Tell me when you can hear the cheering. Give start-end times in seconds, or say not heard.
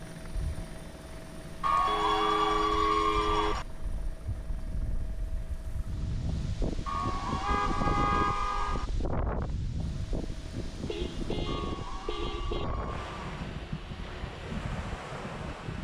1.6-3.6, 6.8-8.8, 11.4-13.4.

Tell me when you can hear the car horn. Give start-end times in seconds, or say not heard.
1.9-3.5, 7.4-8.9, 10.8-12.7.